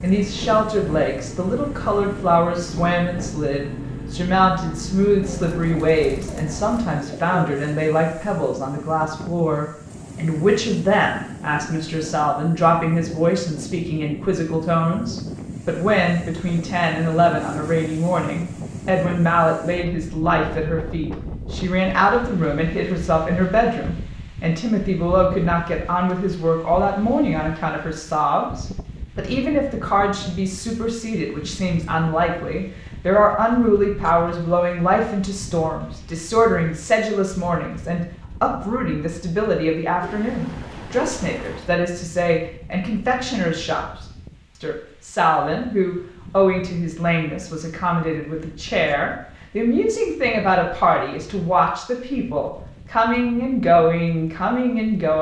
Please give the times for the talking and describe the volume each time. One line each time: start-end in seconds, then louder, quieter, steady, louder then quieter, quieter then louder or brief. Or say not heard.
0.0-55.1 steady.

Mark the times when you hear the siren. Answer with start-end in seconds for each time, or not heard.
not heard.